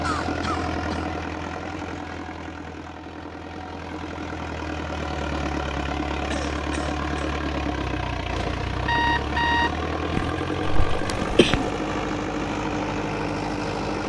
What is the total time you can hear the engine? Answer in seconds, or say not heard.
14 s.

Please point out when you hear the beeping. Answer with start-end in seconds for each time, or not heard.
8.3-9.8.